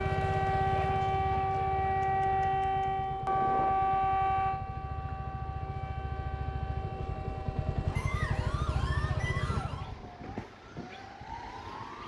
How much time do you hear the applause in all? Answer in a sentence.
The applause can't be heard in this clip.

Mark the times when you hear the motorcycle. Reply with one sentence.
The motorcycle can be heard from 0.0 to 10.1 s.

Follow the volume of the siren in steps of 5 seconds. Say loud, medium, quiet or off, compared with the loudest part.
loud, quiet, quiet.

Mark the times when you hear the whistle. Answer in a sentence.
You can hear the whistle from 8.0 to 9.8 s.